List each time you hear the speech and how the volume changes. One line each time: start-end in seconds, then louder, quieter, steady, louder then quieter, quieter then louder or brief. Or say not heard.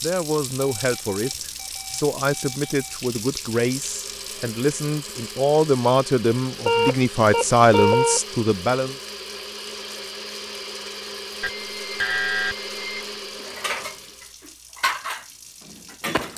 0.0-8.9 louder.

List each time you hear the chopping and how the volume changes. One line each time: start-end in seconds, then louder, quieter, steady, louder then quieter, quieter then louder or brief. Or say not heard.
not heard.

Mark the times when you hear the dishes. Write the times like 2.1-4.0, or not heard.
13.4-16.3.